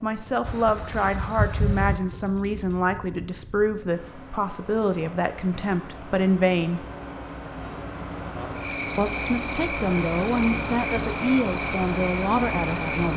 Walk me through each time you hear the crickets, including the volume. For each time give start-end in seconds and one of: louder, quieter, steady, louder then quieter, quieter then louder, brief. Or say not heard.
0.1-13.1 quieter then louder.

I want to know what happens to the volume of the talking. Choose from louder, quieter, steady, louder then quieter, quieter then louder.
steady.